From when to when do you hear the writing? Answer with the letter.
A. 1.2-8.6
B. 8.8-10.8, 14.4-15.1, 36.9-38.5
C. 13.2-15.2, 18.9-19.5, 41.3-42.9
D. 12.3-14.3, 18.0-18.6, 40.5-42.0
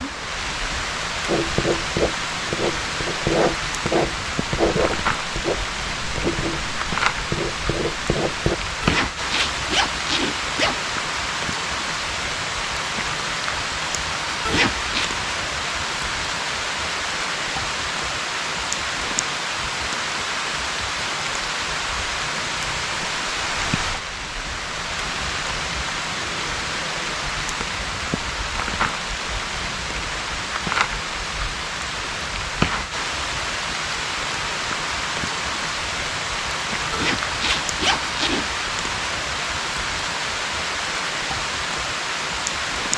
A.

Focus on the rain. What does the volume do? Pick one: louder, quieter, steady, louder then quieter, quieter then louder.
steady.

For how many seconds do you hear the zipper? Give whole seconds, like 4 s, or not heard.
4 s.